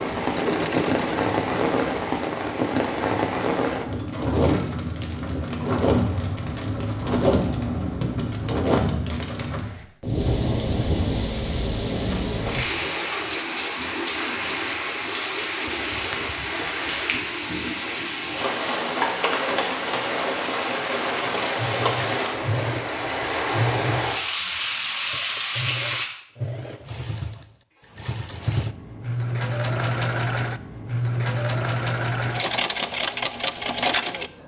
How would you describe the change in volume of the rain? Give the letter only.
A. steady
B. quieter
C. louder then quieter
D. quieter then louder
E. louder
A.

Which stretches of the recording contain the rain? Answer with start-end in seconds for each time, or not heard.
0.0-26.1.